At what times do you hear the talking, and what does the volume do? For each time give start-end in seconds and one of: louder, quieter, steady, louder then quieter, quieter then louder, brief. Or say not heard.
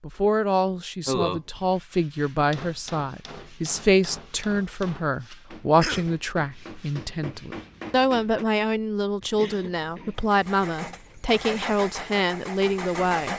0.0-13.3 steady.